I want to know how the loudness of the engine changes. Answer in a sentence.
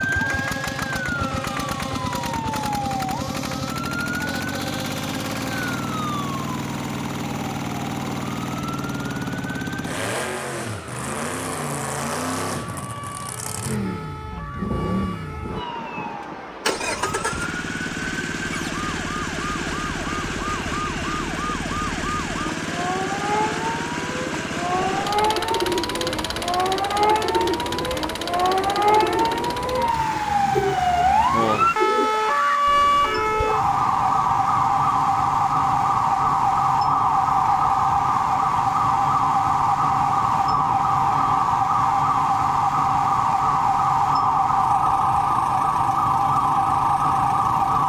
The loudness of the engine goes down.